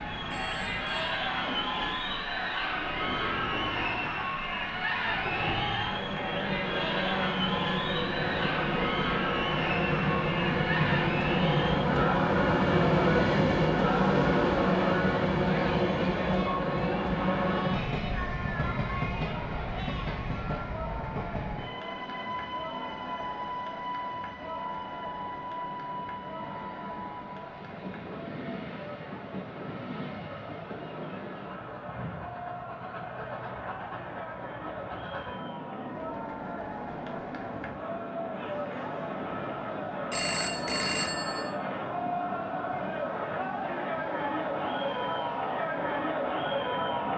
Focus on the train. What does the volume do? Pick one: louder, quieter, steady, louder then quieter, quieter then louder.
louder then quieter.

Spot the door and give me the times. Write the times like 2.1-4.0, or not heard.
not heard.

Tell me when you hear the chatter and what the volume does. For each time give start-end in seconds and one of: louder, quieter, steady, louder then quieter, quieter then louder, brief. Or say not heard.
0.0-47.1 quieter then louder.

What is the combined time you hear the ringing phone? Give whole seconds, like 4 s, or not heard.
2 s.